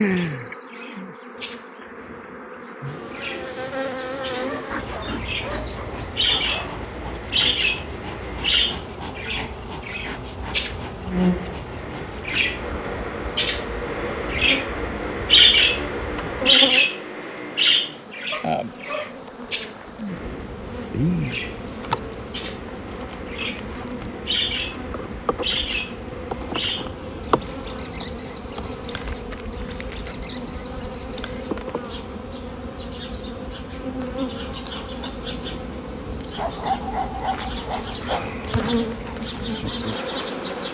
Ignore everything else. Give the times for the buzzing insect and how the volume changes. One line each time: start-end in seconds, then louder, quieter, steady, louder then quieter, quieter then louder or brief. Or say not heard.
0.0-40.6 steady.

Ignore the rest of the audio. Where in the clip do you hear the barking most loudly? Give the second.
37 s.